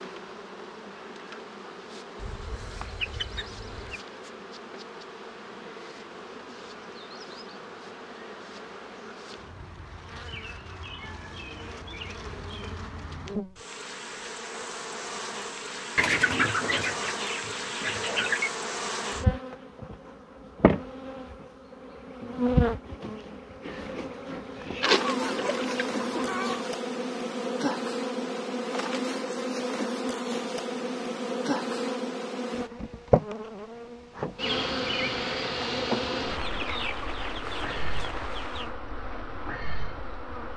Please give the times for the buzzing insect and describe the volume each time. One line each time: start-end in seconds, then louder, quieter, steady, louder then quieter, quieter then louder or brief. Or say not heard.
0.0-40.5 louder.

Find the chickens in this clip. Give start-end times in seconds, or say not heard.
2.1-4.0, 15.9-18.5, 24.8-26.7, 36.2-38.8.